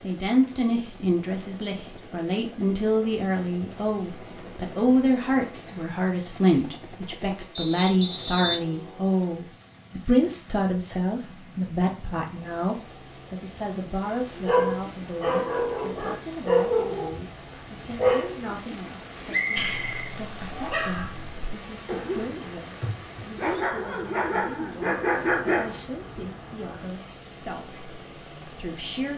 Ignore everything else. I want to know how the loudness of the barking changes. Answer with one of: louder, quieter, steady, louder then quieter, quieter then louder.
quieter then louder.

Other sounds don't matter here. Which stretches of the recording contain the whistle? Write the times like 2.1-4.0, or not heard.
7.5-8.6, 19.3-20.1.